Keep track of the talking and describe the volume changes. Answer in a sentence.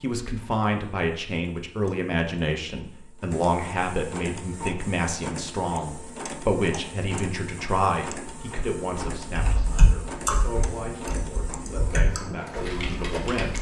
The volume of the talking goes down.